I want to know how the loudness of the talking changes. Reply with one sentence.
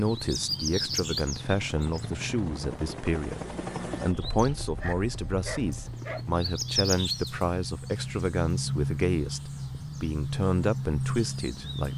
The volume of the talking stays about the same.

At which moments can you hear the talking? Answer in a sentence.
The talking can be heard from 0.0 to 11.9 s.